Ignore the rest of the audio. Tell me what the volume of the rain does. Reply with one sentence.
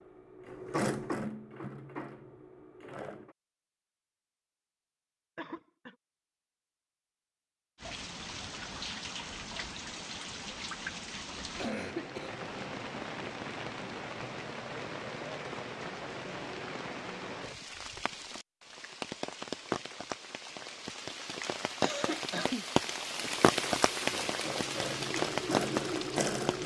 The loudness of the rain goes up.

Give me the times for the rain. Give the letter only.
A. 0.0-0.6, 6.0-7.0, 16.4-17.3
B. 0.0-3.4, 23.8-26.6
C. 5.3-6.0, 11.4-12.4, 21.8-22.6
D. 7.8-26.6
D.